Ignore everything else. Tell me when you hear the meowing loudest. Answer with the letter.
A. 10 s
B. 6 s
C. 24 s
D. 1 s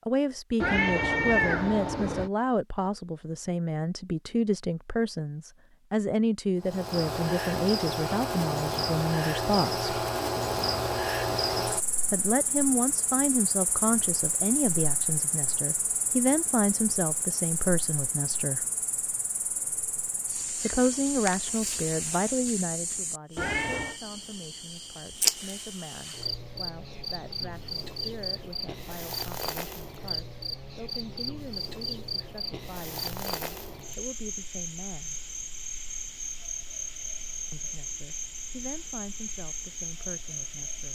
D.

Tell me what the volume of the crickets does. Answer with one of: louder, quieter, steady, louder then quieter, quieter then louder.
quieter.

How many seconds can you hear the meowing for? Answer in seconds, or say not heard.
2 s.